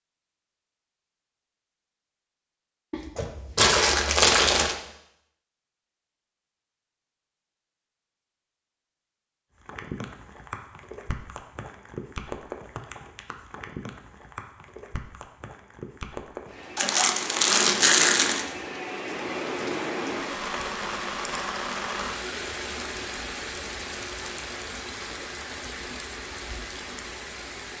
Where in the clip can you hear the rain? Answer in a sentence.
You can hear the rain from 9.6 to 27.7 s.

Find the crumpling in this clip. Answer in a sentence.
The crumpling can be heard from 2.9 to 4.8 s and from 16.8 to 18.4 s.